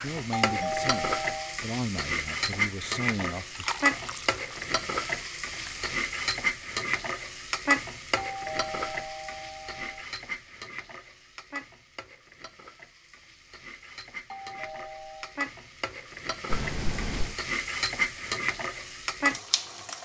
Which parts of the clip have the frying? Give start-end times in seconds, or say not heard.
0.0-19.9.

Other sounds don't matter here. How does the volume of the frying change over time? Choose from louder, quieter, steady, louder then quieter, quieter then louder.
quieter then louder.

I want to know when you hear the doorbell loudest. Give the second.
1 s.